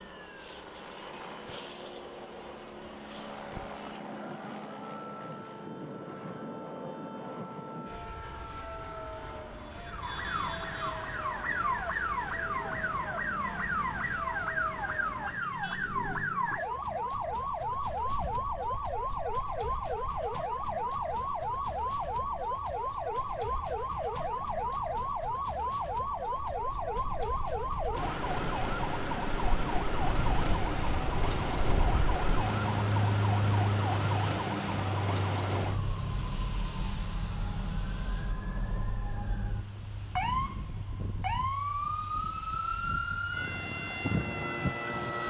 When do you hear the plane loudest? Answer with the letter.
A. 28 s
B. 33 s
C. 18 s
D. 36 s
B.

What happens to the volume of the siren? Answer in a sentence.
The volume of the siren goes up.